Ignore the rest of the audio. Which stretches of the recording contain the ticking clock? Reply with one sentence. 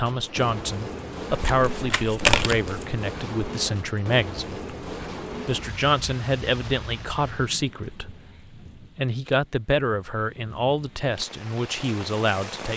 The ticking clock can't be heard in this clip.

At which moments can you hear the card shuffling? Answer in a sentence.
You can hear the card shuffling from 1.3 to 2.9 s.